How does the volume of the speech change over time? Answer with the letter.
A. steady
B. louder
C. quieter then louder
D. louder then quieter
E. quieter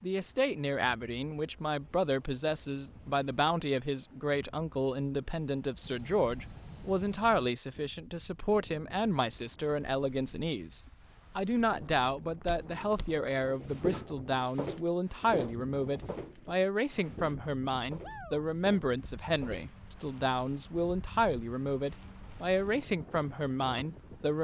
A.